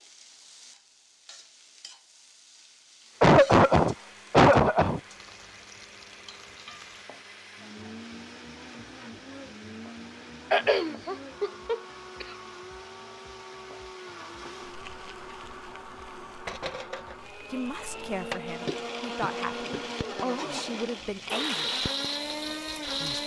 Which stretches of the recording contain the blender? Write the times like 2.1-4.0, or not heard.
3.0-23.2.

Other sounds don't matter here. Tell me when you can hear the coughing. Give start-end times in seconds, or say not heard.
3.2-5.0, 10.5-12.2, 18.6-20.0.